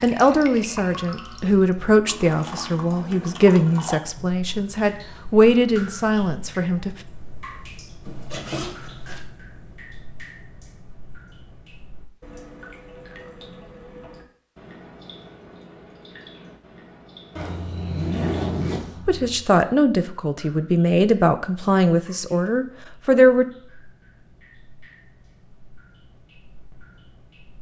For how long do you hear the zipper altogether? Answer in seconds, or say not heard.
3 s.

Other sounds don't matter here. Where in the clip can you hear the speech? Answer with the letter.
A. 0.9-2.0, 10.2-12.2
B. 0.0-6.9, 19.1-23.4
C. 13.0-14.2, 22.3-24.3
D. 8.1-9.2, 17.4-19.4
B.